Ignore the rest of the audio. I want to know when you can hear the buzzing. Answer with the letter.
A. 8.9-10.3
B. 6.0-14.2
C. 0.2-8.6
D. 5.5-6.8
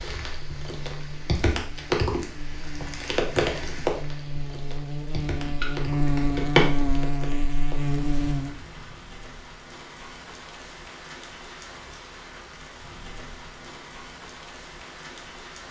C.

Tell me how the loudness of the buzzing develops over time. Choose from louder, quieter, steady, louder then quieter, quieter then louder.
louder.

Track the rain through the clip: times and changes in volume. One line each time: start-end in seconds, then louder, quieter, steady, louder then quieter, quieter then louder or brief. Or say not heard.
0.0-15.6 quieter.